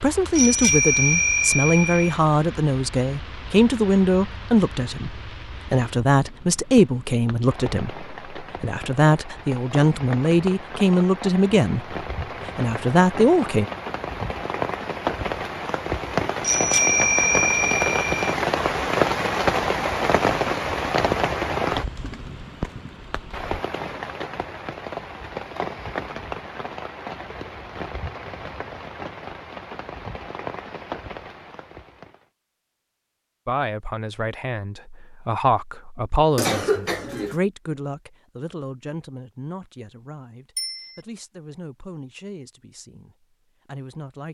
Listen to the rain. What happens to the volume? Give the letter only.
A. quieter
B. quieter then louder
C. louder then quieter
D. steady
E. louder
C.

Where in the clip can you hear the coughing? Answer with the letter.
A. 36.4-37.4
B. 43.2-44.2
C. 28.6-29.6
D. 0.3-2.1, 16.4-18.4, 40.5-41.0
A.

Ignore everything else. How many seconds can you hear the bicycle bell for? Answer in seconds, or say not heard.
4 s.